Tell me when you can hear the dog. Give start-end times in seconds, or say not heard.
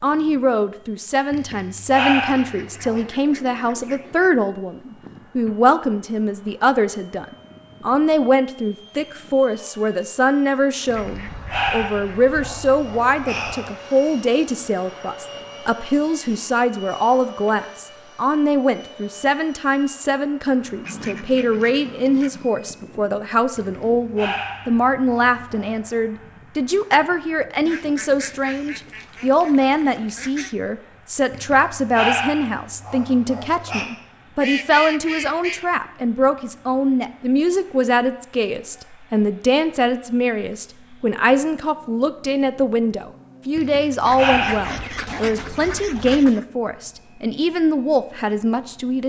1.3-3.0, 10.8-13.7, 23.6-25.8, 31.3-33.9, 43.5-45.3.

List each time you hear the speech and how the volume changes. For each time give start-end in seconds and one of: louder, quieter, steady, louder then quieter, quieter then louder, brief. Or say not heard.
0.0-49.0 steady.